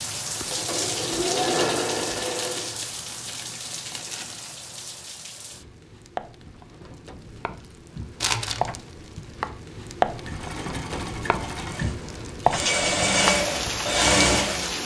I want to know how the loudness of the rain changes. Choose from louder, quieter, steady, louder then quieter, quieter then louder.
quieter then louder.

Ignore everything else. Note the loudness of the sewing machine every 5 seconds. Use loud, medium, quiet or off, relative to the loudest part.
loud, off, loud.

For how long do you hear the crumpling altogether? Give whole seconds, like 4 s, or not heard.
3 s.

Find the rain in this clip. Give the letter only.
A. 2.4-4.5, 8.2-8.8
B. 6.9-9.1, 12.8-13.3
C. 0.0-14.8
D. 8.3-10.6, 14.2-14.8
C.